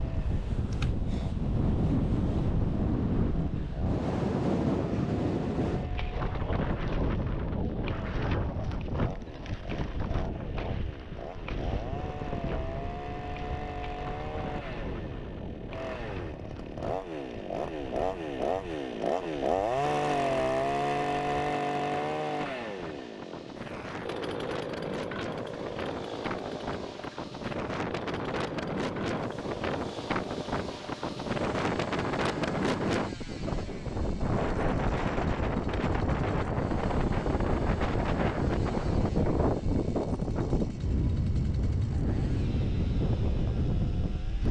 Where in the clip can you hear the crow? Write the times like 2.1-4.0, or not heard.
not heard.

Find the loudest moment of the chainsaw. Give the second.
20 s.